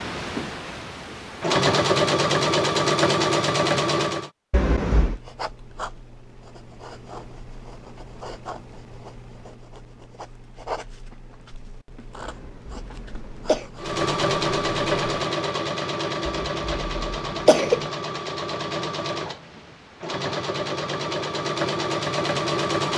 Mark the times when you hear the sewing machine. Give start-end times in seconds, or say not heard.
0.0-4.3, 13.8-22.9.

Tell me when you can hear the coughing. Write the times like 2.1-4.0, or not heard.
4.5-5.2, 12.2-13.7, 16.2-17.9.